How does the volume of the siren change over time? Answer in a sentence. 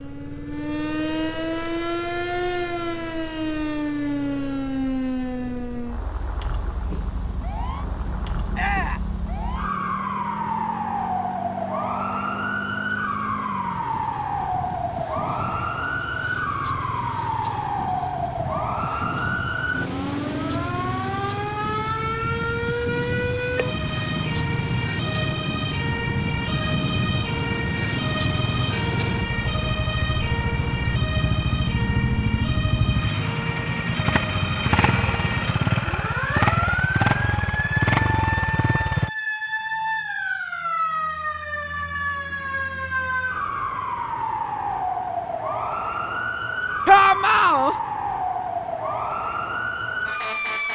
The loudness of the siren stays about the same.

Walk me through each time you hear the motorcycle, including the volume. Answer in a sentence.
You can hear the motorcycle from 0.0 to 39.1 s, getting louder.